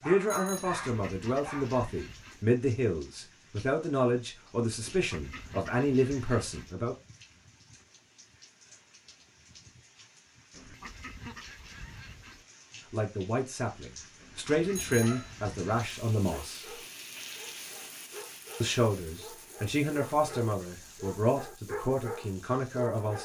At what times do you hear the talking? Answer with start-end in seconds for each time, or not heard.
0.1-7.0, 12.9-16.8, 18.6-23.2.